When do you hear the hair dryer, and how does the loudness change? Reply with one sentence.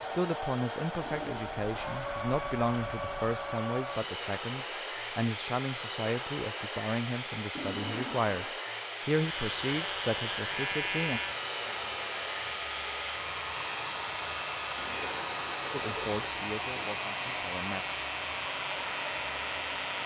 You can hear the hair dryer from 0.0 to 20.0 s, at a steady volume.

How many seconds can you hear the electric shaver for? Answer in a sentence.
You can hear the electric shaver for 11 seconds altogether.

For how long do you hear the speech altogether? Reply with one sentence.
The speech can be heard for 13 seconds in total.